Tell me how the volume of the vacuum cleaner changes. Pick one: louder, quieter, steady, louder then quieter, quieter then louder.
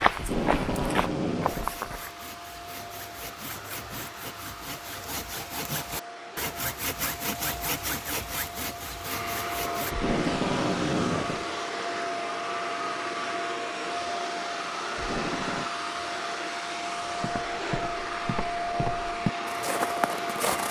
louder.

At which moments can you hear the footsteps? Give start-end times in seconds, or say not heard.
0.0-2.1, 17.2-20.6.